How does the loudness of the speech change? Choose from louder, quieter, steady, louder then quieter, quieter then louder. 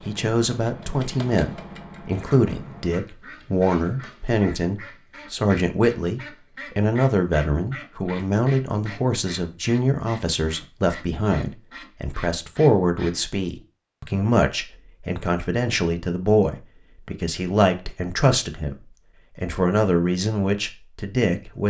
steady.